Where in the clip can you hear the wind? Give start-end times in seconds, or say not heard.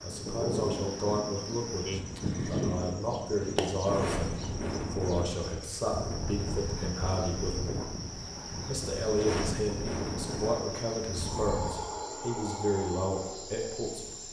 0.0-11.8.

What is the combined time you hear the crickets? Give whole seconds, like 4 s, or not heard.
14 s.